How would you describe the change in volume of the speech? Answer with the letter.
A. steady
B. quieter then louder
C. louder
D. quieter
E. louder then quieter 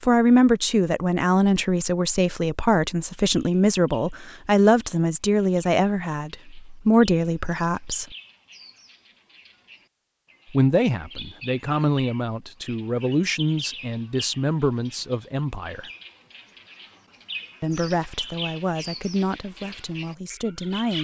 D.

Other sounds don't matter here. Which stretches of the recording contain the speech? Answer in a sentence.
You can hear the speech from 0.0 to 8.2 s, from 10.5 to 15.9 s and from 17.6 to 21.0 s.